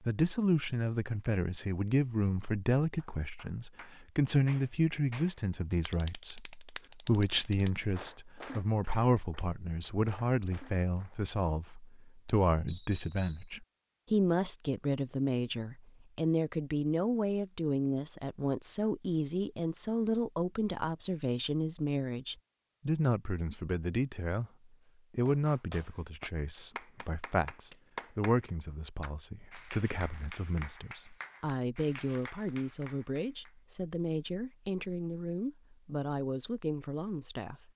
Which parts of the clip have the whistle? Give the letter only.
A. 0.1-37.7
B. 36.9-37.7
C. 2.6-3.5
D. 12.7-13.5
D.